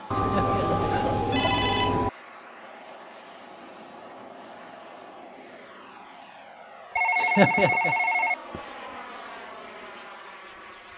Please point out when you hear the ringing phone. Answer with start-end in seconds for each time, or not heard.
0.1-2.1, 7.0-8.7.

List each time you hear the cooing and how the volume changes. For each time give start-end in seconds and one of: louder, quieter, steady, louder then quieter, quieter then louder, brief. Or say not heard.
not heard.